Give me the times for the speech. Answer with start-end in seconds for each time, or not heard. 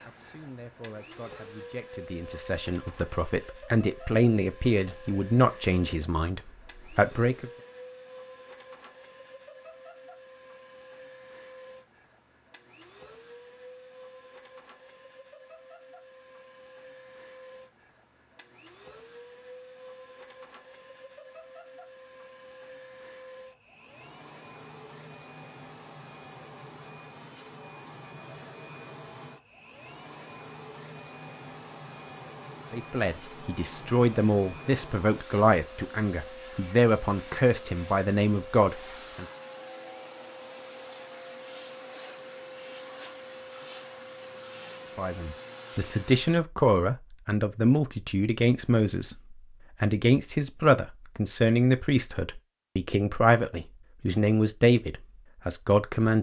0.0-7.5, 32.7-39.2, 45.0-56.1.